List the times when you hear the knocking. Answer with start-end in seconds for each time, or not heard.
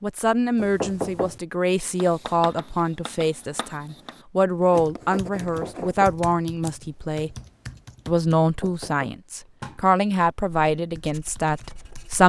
0.6-1.4, 5.4-6.2, 8.4-9.1.